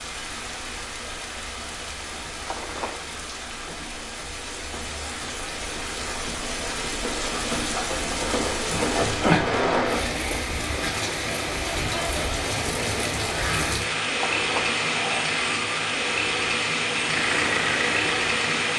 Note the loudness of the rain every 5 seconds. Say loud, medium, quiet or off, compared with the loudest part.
medium, loud, loud, loud.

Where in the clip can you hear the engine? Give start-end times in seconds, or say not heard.
16.9-18.7.